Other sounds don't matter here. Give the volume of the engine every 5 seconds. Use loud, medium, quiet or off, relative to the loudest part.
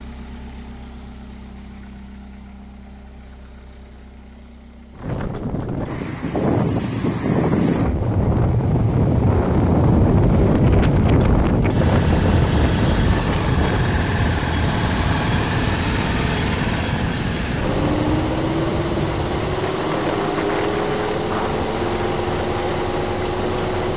quiet, quiet, medium, loud, loud.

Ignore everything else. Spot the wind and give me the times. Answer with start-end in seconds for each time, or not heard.
4.9-23.7.